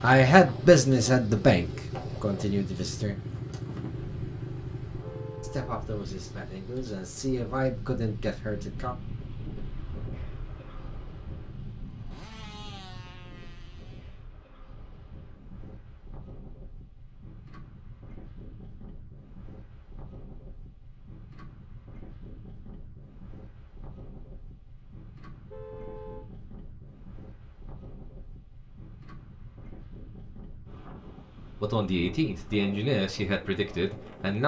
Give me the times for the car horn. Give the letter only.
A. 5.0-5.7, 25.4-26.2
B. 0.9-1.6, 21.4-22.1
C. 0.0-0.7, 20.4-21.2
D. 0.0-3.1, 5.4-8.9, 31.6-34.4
A.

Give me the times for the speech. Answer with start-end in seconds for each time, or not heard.
0.0-3.1, 5.4-8.9, 31.6-34.4.